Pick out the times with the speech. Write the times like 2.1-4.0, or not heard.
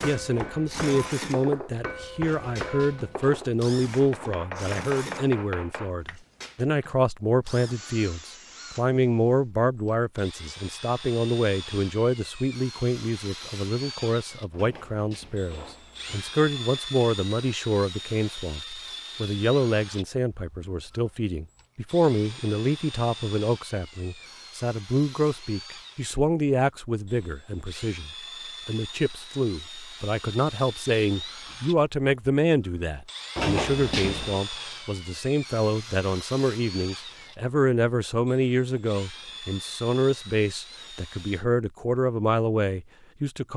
0.0-43.5.